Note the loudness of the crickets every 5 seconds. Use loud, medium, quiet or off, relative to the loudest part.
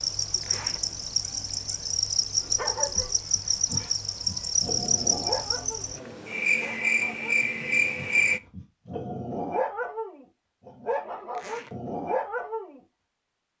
loud, loud, off.